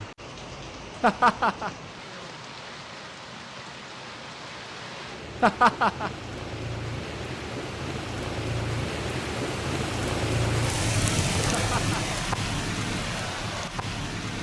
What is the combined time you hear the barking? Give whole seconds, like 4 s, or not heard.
not heard.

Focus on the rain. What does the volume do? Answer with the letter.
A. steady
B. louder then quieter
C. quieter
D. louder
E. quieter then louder
D.